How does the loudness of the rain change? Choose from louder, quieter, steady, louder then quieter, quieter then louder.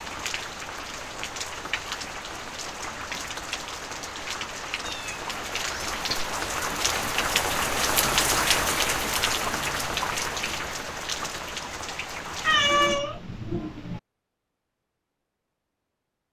louder then quieter.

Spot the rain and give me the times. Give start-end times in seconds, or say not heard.
0.0-13.0.